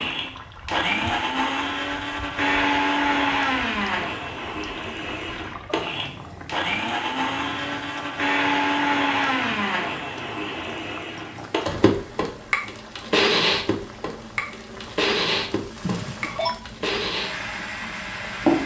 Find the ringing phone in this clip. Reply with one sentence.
You can hear the ringing phone from 15.8 to 16.6 s.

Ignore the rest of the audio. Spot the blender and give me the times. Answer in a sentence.
You can hear the blender from 0.0 to 18.6 s.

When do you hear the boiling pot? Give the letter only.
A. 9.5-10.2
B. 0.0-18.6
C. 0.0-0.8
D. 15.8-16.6
B.